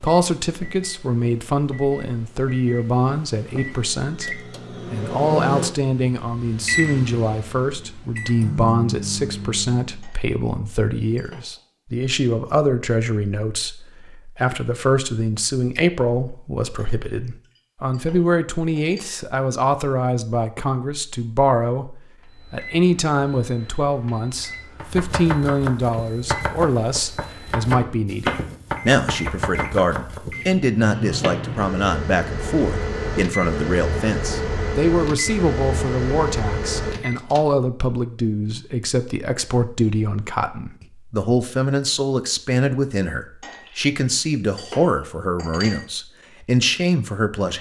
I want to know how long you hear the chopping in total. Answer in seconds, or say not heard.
6 s.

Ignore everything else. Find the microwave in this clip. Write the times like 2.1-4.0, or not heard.
0.0-10.1, 22.2-37.4.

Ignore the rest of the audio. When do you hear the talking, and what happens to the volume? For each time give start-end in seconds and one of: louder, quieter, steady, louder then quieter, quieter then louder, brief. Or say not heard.
0.0-47.5 steady.